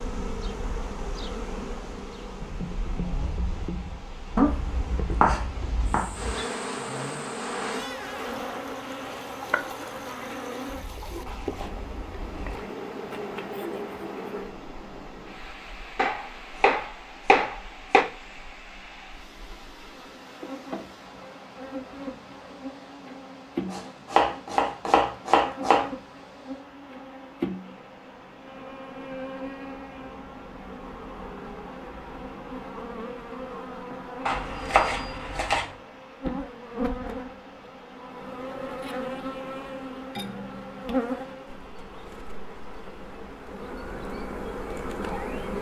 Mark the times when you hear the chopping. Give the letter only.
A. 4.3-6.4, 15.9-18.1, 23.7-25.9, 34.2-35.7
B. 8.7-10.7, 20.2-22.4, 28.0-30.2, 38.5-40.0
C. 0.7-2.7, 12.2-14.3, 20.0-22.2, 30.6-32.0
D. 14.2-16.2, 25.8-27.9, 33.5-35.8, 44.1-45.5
A.